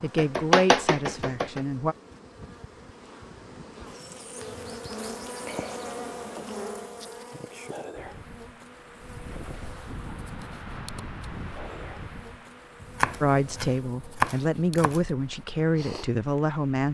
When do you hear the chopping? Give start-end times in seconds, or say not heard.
0.1-1.6, 12.8-15.0.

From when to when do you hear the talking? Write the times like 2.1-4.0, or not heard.
0.0-1.9, 13.2-16.8.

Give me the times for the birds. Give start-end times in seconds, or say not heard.
not heard.